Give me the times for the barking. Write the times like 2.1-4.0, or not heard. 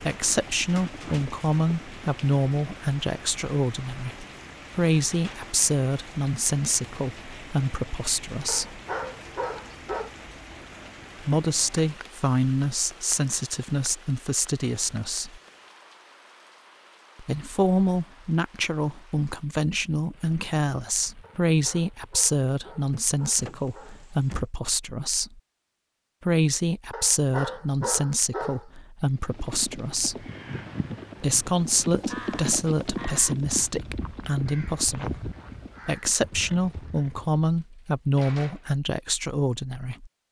8.4-10.2, 21.2-24.1, 26.9-28.6.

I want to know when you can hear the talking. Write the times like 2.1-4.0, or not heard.
0.0-8.8, 11.2-15.4, 17.1-25.4, 26.2-30.2, 31.2-40.1.